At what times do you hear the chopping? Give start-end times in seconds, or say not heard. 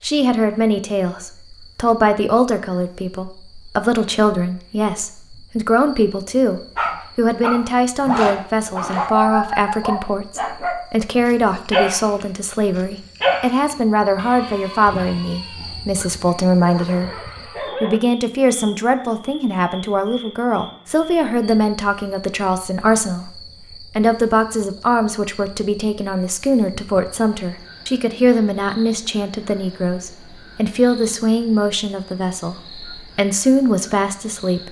not heard.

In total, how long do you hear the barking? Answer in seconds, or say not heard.
11 s.